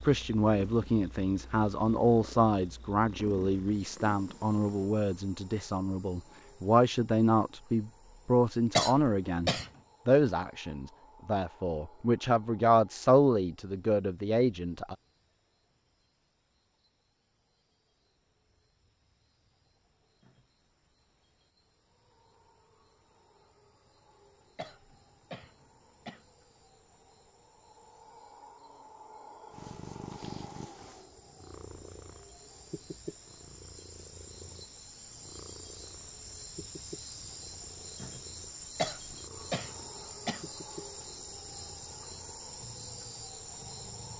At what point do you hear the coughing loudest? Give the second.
9 s.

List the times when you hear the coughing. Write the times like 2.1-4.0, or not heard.
8.8-9.7, 24.6-26.2, 38.8-40.4.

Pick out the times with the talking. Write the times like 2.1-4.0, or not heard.
0.1-14.9.